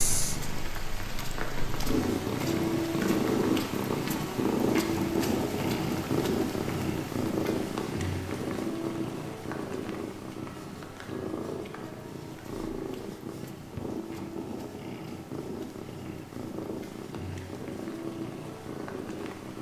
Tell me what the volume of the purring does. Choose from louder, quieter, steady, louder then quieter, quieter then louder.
quieter.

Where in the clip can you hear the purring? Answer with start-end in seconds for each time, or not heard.
0.0-19.5.